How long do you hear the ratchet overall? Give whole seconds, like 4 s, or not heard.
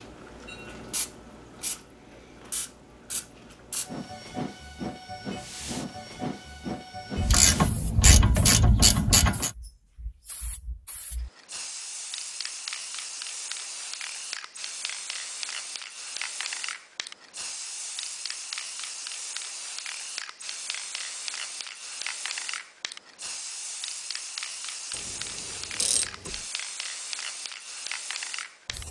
4 s.